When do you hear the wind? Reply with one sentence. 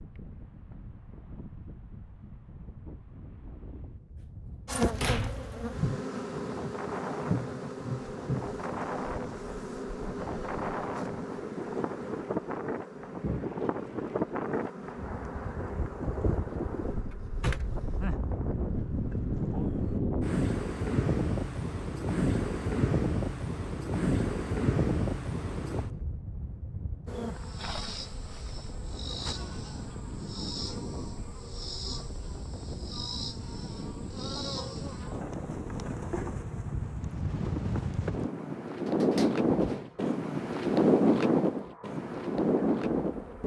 You can hear the wind from 0.0 to 43.4 s.